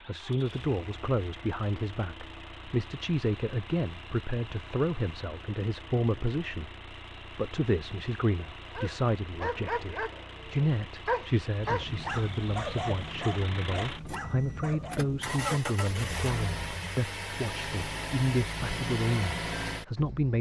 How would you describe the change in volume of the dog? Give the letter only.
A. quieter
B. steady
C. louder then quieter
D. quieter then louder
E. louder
A.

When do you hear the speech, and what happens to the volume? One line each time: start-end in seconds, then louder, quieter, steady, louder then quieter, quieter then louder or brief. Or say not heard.
0.1-20.3 steady.